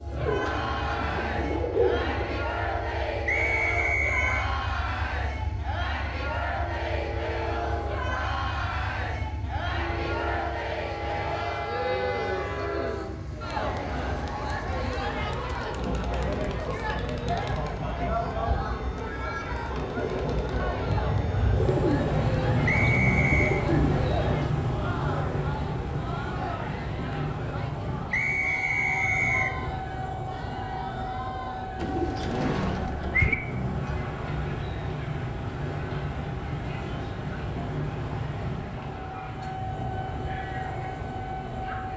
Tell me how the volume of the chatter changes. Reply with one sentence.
The volume of the chatter goes down.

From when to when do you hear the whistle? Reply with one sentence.
The whistle can be heard from 3.2 to 4.5 s, from 22.6 to 23.6 s and from 28.1 to 29.6 s.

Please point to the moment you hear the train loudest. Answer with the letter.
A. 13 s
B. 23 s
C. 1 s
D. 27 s
B.